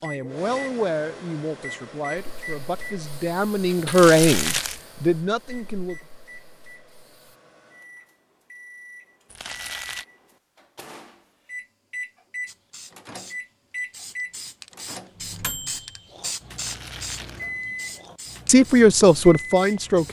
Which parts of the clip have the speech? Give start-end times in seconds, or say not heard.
0.0-6.0, 18.4-20.0.